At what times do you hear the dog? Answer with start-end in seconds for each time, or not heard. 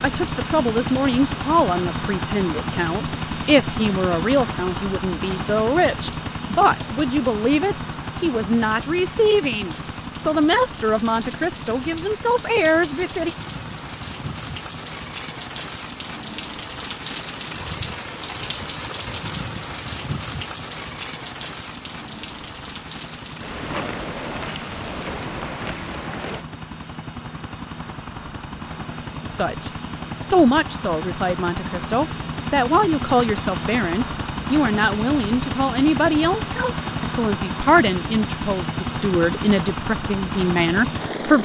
not heard.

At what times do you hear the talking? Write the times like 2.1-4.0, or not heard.
0.0-13.3, 29.2-41.3.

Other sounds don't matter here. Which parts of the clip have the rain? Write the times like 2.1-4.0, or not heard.
0.1-26.4.